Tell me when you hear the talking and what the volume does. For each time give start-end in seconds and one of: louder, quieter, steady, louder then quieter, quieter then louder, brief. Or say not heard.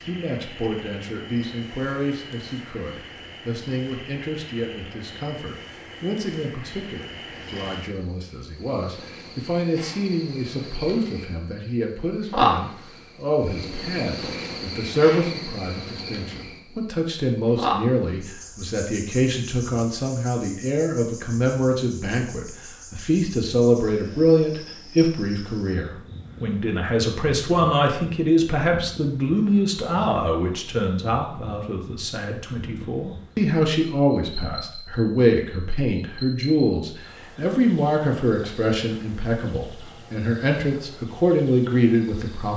0.0-42.5 louder.